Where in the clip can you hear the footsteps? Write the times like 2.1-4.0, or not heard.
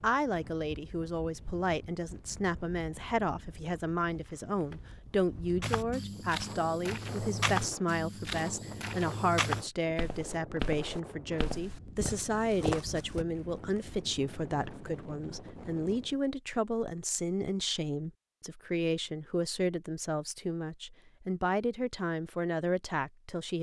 5.6-13.2.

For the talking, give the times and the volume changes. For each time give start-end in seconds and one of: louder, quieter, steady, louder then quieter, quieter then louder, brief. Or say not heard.
0.0-23.5 steady.